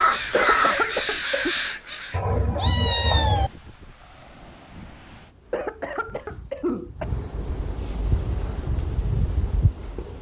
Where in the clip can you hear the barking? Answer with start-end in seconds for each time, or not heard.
not heard.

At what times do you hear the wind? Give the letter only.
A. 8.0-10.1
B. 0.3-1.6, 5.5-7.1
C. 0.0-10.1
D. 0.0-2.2
C.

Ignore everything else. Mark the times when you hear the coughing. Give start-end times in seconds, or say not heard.
0.3-1.6, 5.5-7.1.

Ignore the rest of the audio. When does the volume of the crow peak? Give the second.
1 s.